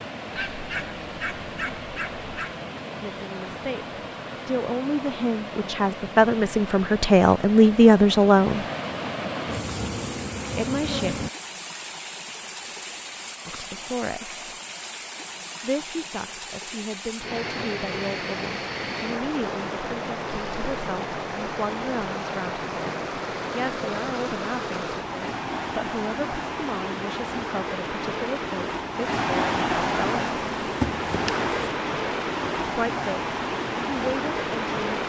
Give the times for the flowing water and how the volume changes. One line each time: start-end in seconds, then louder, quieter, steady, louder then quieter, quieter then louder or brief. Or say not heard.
0.0-35.0 louder.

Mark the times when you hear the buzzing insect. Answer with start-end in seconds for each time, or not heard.
9.4-11.3, 30.2-31.5.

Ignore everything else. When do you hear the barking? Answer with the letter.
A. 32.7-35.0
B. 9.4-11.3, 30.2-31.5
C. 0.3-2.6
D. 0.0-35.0
C.